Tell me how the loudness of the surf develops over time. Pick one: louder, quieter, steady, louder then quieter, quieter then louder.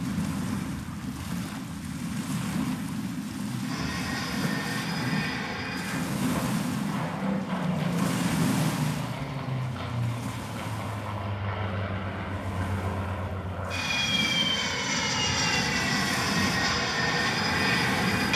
quieter then louder.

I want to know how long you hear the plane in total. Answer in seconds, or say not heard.
15 s.